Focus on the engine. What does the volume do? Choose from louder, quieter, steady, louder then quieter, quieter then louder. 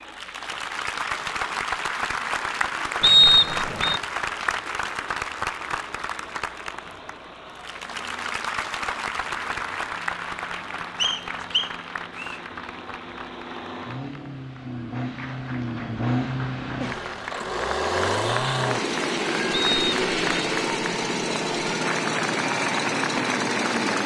louder.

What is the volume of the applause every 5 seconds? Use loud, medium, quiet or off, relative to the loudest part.
loud, loud, medium, medium, loud.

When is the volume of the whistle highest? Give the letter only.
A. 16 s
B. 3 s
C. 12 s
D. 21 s
B.